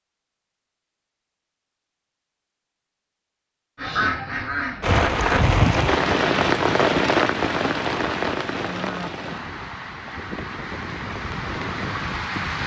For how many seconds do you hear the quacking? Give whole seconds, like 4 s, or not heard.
2 s.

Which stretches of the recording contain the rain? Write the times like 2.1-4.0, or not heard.
4.8-12.6.